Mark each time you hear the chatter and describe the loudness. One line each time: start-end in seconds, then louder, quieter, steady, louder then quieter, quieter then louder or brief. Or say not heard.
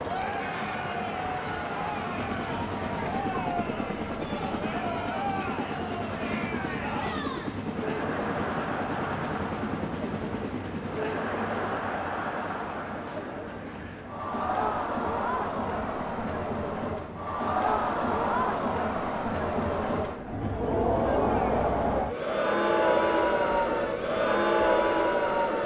0.0-25.6 louder.